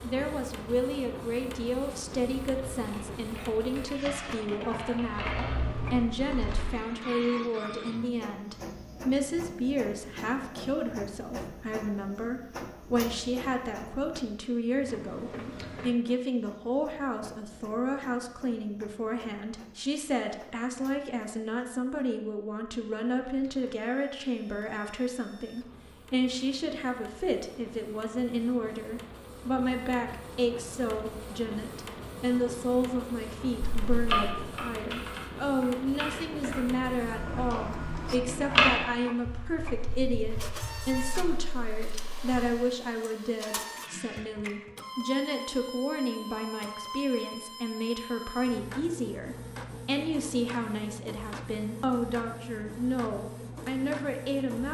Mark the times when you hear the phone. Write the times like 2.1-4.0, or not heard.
33.6-34.2.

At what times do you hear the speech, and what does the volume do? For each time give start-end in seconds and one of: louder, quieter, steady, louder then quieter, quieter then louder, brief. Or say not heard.
0.0-54.6 steady.